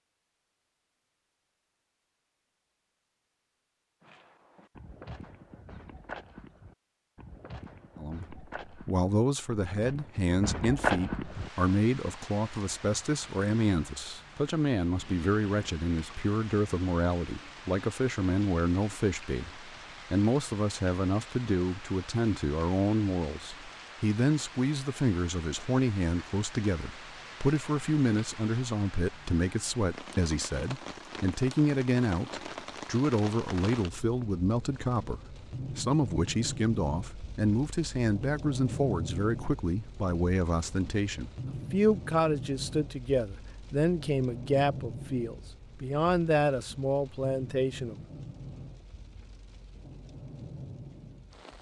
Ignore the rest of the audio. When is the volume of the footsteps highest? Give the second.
11 s.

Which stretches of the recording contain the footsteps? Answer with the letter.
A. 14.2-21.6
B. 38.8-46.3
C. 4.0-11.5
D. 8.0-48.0
C.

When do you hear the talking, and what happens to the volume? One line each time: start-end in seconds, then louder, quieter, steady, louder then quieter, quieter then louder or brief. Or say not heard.
8.0-48.0 steady.